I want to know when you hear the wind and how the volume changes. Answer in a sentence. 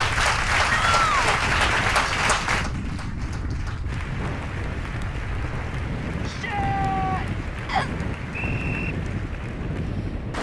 You can hear the wind from 0.0 to 10.3 s, at a steady volume.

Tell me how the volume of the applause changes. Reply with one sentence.
The loudness of the applause goes down.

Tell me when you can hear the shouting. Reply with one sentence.
The shouting can be heard from 0.7 to 1.2 s and from 6.2 to 7.5 s.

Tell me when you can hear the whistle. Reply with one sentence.
The whistle can be heard from 7.7 to 8.9 s.